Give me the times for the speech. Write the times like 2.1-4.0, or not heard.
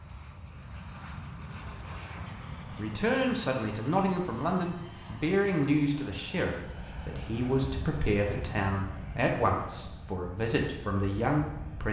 2.8-11.8.